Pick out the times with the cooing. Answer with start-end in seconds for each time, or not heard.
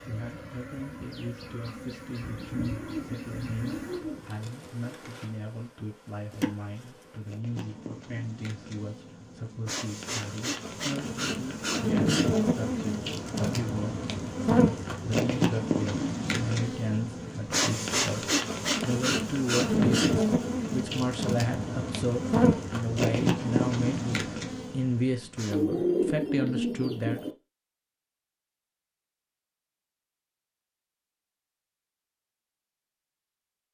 2.2-4.3, 25.5-27.3.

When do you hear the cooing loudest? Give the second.
26 s.